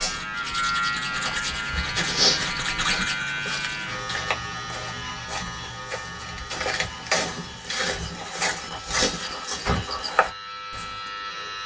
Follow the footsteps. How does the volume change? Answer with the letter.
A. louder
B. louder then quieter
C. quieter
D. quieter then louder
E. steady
D.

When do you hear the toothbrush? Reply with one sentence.
The toothbrush can be heard from 0.0 to 4.0 s.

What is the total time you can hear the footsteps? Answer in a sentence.
The footsteps can be heard for 10 seconds in total.